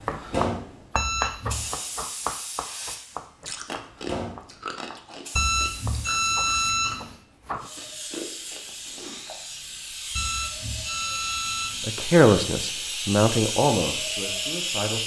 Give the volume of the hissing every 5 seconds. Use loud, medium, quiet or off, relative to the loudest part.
loud, medium, loud.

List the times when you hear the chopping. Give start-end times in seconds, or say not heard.
0.1-7.7.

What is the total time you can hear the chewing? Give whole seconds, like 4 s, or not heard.
6 s.